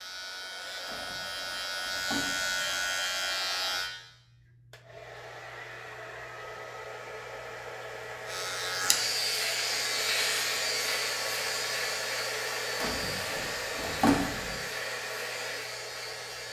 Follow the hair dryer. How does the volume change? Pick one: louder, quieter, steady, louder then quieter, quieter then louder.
louder.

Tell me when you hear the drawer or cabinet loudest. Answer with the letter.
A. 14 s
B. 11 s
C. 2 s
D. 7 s
A.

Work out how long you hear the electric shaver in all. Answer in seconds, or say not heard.
12 s.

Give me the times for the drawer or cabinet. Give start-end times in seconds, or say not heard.
0.8-2.6, 12.8-14.6.